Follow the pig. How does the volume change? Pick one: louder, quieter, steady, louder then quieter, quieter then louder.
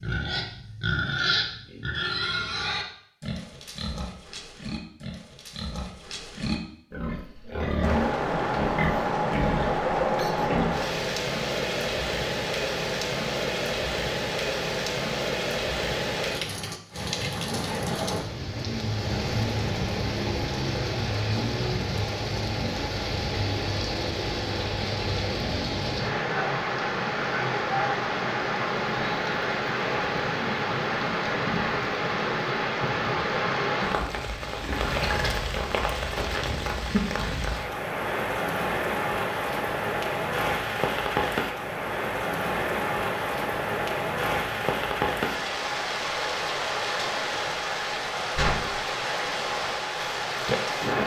quieter then louder.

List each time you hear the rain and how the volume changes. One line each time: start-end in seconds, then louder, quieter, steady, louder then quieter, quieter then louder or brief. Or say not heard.
7.8-51.0 steady.